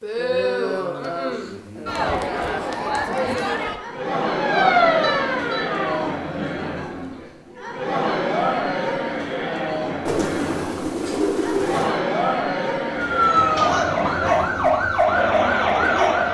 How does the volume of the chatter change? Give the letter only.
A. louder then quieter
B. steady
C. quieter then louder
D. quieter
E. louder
B.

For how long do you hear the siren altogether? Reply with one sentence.
You can hear the siren for 5 seconds altogether.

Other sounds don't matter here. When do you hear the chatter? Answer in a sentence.
You can hear the chatter from 0.0 to 16.2 s.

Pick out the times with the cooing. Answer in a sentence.
You can hear the cooing from 10.1 to 12.0 s.